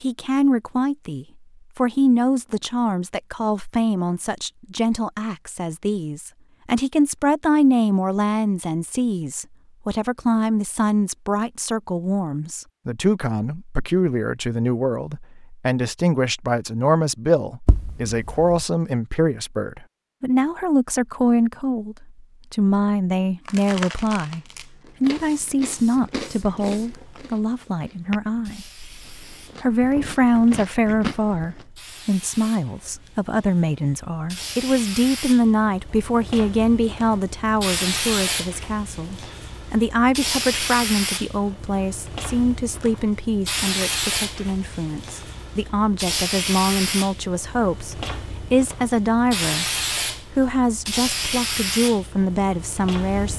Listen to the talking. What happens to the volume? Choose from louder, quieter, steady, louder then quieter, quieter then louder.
steady.